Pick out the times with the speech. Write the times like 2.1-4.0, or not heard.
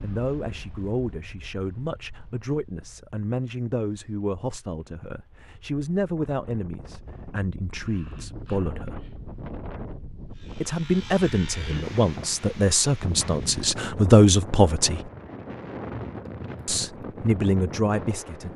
0.0-9.1, 10.6-15.1, 16.6-18.5.